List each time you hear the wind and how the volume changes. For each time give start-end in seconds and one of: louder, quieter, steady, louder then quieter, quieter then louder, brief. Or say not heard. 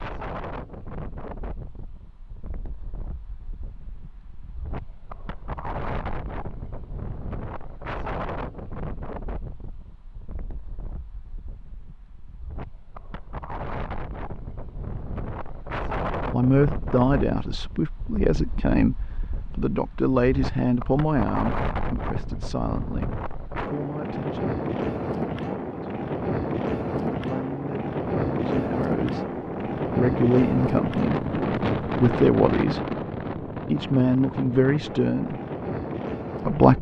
0.0-36.7 louder.